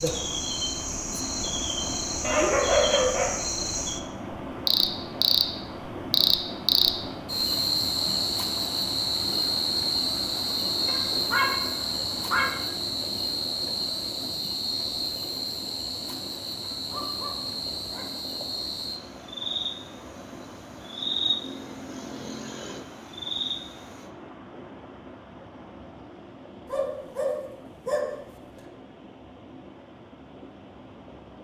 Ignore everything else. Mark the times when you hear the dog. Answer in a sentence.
The dog can be heard from 2.2 to 3.3 s, from 10.8 to 12.5 s, from 16.8 to 18.1 s and from 26.6 to 28.6 s.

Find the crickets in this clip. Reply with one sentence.
You can hear the crickets from 0.0 to 24.1 s.